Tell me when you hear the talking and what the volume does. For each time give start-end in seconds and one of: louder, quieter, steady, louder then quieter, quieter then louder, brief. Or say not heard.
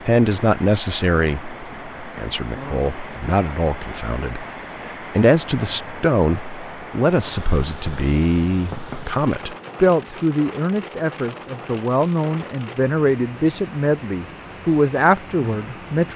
0.1-16.1 steady.